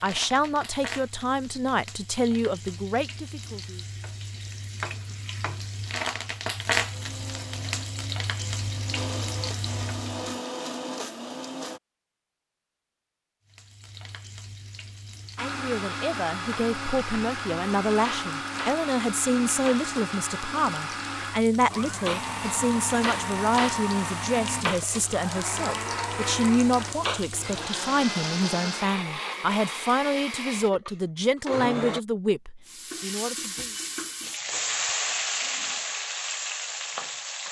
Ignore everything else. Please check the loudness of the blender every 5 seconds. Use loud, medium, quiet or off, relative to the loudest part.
off, medium, loud, loud, loud, loud, loud, off.